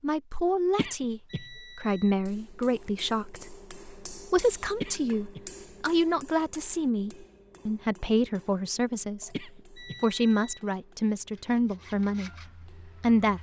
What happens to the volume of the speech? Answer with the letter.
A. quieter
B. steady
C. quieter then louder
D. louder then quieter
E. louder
B.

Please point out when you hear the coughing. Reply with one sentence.
You can hear the coughing from 0.8 to 1.4 s, from 4.8 to 5.4 s and from 9.3 to 9.9 s.